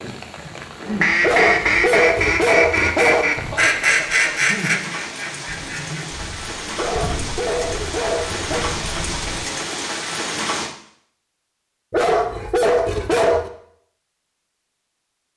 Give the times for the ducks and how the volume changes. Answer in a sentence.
You can hear the ducks from 0.8 to 9.6 s, getting quieter.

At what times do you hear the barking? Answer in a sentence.
You can hear the barking from 1.2 to 3.2 s, from 6.8 to 8.7 s and from 11.9 to 13.5 s.